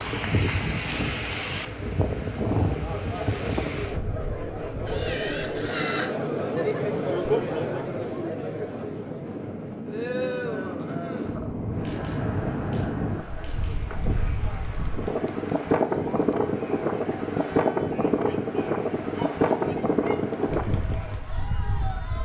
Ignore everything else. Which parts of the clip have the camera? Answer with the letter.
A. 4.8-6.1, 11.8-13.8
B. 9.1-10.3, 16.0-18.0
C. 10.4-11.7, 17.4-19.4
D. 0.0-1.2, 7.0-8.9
A.